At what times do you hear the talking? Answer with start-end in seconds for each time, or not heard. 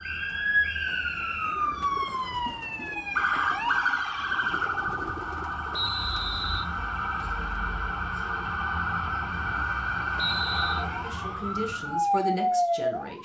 11.0-13.2.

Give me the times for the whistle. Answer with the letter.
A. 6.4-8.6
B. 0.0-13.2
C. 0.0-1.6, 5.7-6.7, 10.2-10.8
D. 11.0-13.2
C.